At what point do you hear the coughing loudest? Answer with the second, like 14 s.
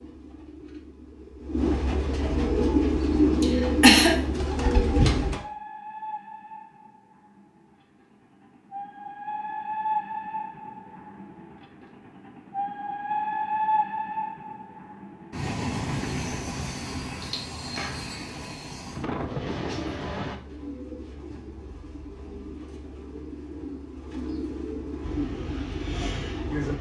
4 s.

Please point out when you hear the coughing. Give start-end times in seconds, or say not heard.
3.4-4.2, 17.2-17.9.